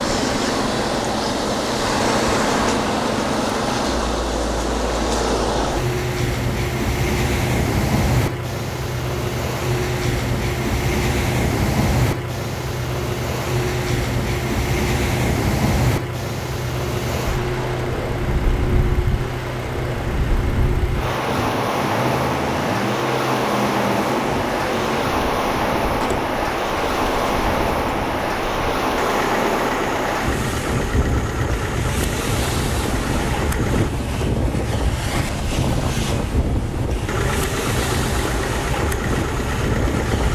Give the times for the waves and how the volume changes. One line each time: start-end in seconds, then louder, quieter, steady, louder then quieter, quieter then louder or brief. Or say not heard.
0.0-40.3 steady.